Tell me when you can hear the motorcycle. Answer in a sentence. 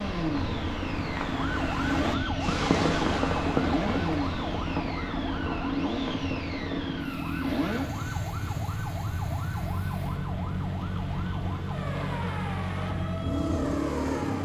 The motorcycle can be heard from 0.0 to 14.4 s.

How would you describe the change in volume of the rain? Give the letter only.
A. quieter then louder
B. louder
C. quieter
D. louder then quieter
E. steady
A.